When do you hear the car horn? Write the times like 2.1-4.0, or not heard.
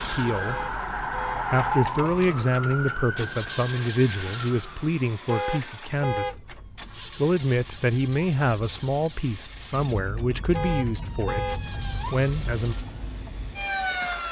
0.4-1.4, 5.2-6.3, 10.5-11.6.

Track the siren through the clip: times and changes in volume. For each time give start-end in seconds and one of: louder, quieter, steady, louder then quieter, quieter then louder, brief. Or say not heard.
0.0-14.2 quieter then louder.